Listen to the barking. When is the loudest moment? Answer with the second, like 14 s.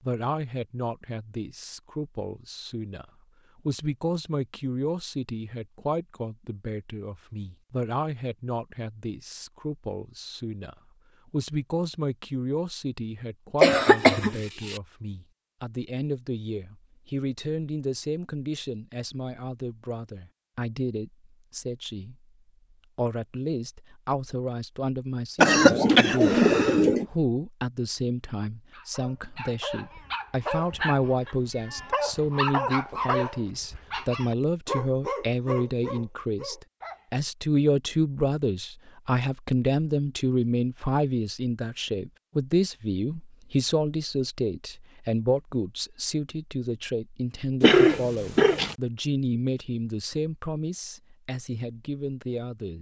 33 s.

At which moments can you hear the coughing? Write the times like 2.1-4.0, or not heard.
13.6-14.8, 25.4-27.1, 47.6-48.8.